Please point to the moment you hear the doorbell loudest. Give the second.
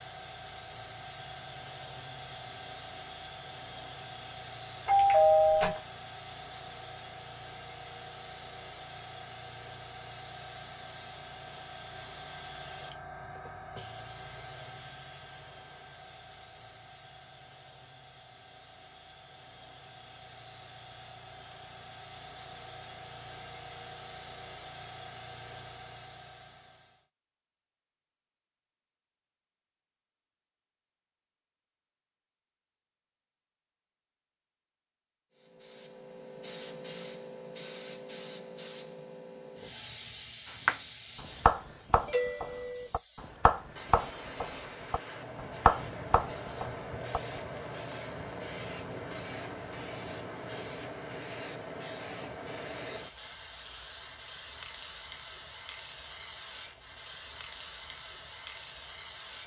5 s.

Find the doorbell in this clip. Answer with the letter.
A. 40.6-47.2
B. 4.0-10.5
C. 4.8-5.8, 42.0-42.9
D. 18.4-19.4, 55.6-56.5
C.